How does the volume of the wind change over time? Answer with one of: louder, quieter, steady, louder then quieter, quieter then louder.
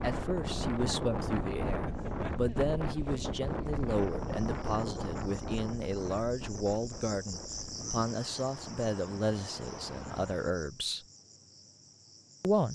quieter.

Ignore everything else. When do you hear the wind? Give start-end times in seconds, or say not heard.
0.0-10.6.